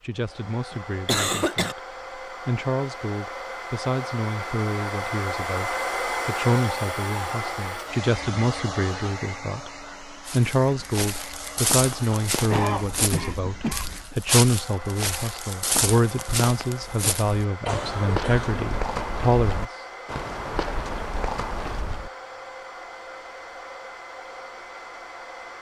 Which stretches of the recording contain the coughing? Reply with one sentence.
The coughing can be heard from 1.1 to 1.8 s, from 12.4 to 14.0 s and from 17.6 to 19.1 s.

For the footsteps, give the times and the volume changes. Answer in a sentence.
You can hear the footsteps from 10.2 to 22.1 s, at a steady volume.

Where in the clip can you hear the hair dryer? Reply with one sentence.
The hair dryer can be heard from 0.0 to 25.5 s.